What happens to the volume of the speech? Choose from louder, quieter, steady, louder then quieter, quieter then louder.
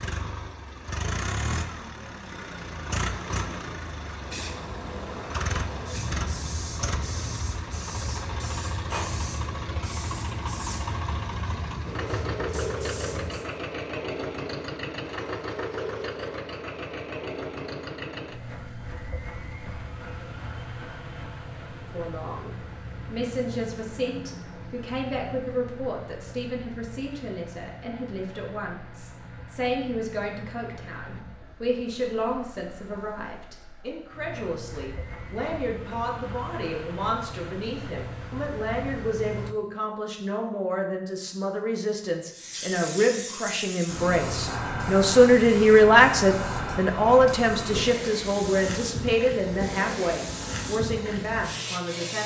louder.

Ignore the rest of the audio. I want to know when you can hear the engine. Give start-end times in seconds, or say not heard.
0.0-39.5.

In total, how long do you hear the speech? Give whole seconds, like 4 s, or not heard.
30 s.